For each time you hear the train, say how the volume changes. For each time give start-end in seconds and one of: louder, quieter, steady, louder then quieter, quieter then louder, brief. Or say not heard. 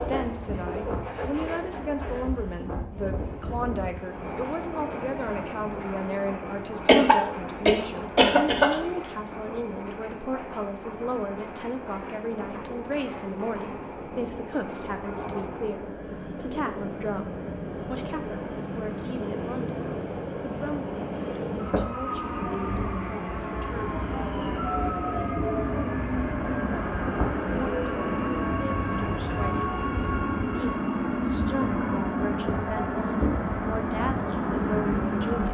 0.0-35.4 louder.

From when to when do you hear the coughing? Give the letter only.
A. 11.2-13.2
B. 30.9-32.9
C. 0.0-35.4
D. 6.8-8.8
D.